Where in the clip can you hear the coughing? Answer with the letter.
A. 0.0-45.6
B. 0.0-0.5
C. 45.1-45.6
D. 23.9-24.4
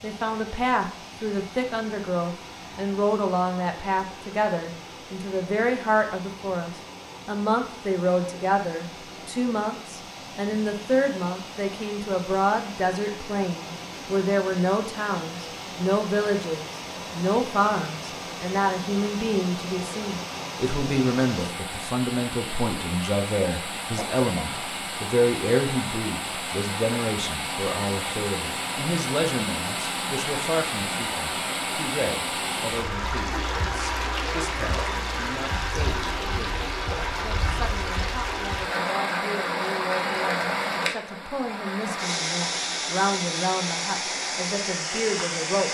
D.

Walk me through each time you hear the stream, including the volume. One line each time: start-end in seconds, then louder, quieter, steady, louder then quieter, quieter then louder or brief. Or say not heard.
0.0-45.6 louder.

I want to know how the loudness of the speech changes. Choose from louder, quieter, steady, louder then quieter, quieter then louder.
quieter.